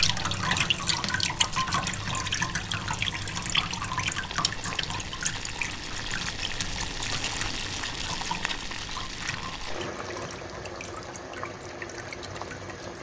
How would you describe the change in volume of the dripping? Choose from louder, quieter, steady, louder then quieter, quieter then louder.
quieter.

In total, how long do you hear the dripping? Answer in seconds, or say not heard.
13 s.